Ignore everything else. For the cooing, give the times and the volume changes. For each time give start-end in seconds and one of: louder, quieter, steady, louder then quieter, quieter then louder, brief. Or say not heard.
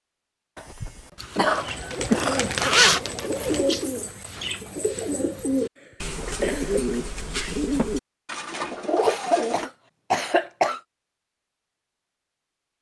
1.6-9.7 steady.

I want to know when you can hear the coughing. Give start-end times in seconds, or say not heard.
0.6-2.5, 5.8-6.8, 9.0-10.8.